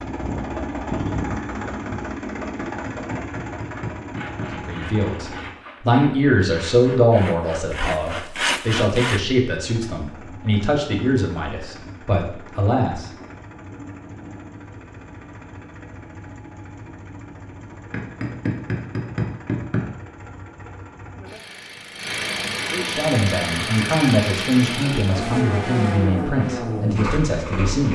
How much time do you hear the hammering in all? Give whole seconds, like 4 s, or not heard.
4 s.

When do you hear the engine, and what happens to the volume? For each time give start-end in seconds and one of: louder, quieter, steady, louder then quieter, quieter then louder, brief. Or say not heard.
0.0-5.7 quieter
9.6-27.9 louder.